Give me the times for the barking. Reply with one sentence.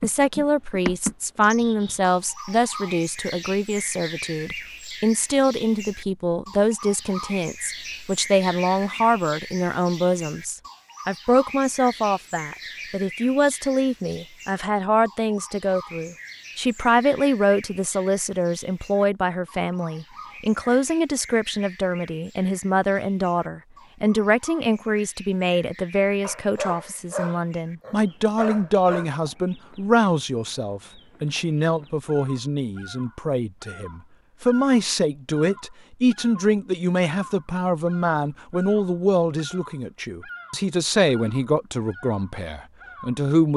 The barking can be heard from 26.2 to 29.1 s.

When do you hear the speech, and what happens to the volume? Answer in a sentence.
The speech can be heard from 0.0 to 43.5 s, at a steady volume.